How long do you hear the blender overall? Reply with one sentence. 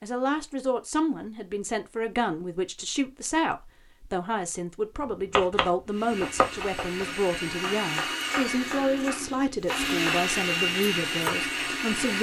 The blender can be heard for 6 seconds in total.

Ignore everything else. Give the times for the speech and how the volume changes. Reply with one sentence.
You can hear the speech from 0.0 to 12.1 s, at a steady volume.